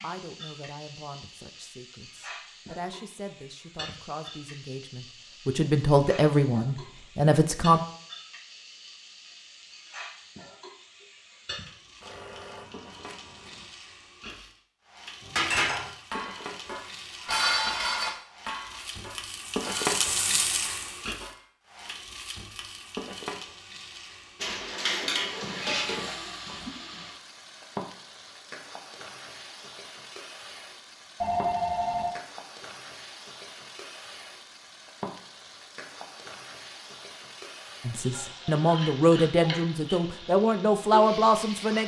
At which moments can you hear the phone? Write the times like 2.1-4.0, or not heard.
12.0-13.7, 31.2-32.2.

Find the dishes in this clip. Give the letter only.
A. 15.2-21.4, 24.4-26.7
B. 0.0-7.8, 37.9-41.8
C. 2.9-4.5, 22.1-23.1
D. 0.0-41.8
A.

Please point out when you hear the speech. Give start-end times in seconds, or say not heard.
0.0-7.8, 37.9-41.8.